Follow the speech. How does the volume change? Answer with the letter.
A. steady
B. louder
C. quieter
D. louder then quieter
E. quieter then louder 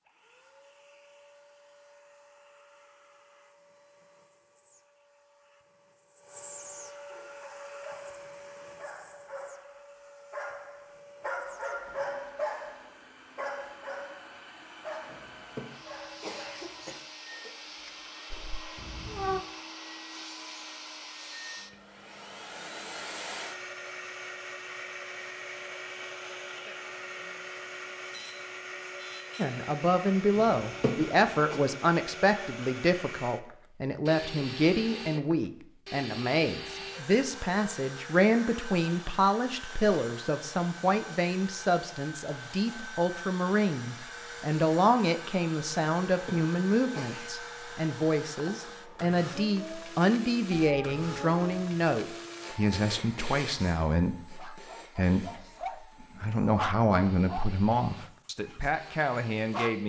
A.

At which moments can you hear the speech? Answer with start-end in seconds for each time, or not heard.
29.4-55.3, 56.0-59.8.